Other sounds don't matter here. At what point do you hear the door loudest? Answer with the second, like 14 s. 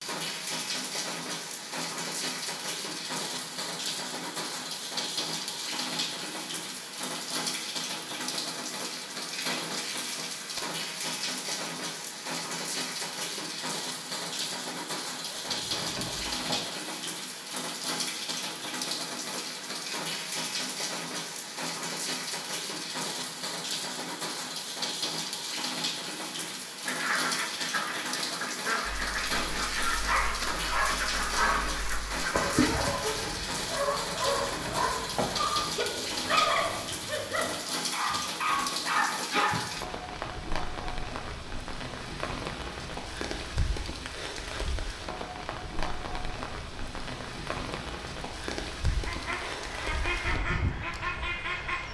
35 s.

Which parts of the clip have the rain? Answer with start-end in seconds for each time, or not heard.
0.0-51.8.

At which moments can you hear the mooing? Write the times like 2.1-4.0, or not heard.
not heard.